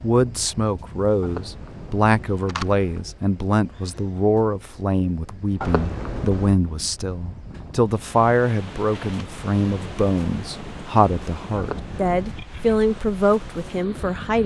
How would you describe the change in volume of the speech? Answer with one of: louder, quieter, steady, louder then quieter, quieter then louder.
steady.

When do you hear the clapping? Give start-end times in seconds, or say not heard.
not heard.